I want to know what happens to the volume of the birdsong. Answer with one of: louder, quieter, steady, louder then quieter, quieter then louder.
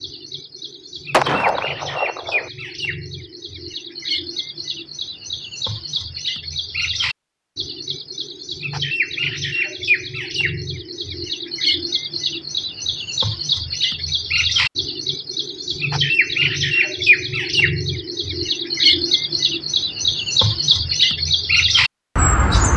louder.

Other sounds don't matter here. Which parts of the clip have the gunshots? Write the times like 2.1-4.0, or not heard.
1.1-2.5.